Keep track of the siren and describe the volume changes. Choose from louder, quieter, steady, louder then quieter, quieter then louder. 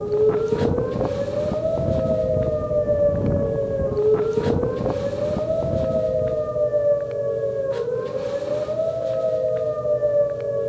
steady.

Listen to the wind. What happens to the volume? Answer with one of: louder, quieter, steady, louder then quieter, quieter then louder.
steady.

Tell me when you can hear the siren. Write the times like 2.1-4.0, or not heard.
0.0-10.6.